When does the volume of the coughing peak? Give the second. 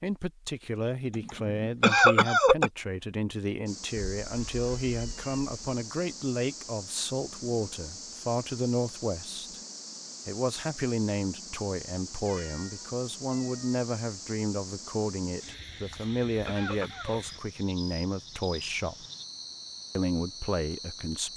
2 s.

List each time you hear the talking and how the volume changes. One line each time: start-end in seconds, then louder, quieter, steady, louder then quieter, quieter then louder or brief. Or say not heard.
0.0-9.6 steady
10.2-19.1 steady
19.9-21.3 brief.